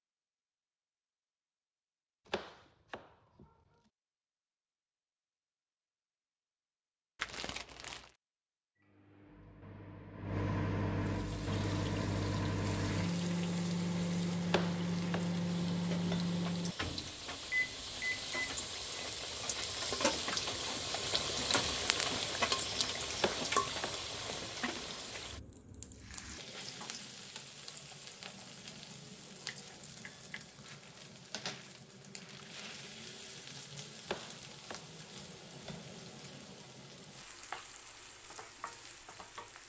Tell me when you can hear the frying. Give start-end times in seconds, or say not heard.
11.0-39.6.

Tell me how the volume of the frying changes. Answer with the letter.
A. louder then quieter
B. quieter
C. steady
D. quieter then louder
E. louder
A.